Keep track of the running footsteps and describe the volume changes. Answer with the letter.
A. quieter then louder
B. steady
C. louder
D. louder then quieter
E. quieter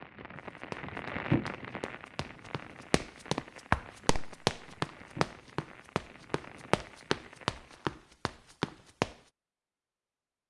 C.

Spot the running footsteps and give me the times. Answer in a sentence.
You can hear the running footsteps from 0.4 to 9.2 s.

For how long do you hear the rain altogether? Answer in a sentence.
The rain can be heard for 8 seconds in total.